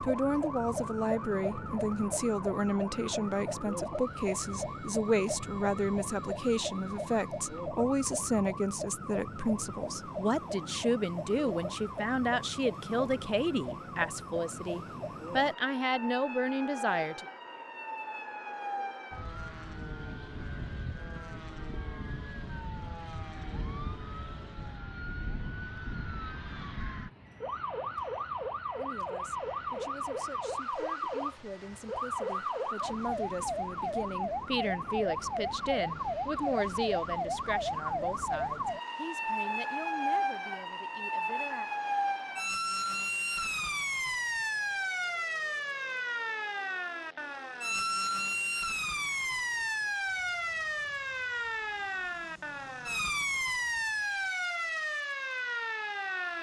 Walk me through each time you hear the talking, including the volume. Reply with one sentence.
The talking can be heard from 0.0 to 17.2 s, at a steady volume; and from 28.8 to 41.7 s, getting louder then quieter.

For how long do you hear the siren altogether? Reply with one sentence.
The siren can be heard for 56 seconds in total.